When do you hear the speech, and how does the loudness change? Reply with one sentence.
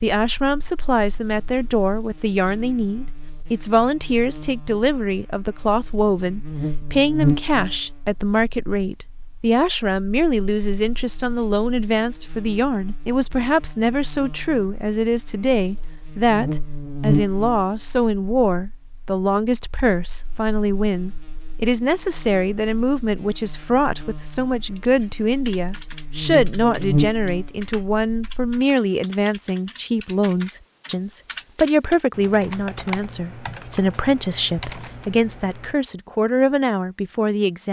The speech can be heard from 0.0 to 37.6 s, at a steady volume.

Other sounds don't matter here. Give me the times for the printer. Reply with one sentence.
The printer can't be heard in this clip.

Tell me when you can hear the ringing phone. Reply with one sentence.
You can't hear the ringing phone here.